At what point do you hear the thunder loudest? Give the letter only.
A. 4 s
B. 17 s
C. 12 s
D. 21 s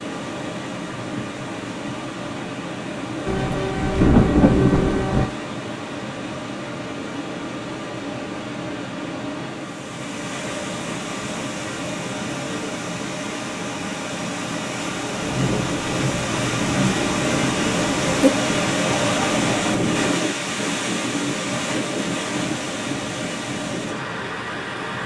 A.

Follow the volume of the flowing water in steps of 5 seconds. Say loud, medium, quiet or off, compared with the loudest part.
medium, medium, medium, loud, loud.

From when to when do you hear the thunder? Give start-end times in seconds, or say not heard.
3.2-5.3, 15.2-18.3.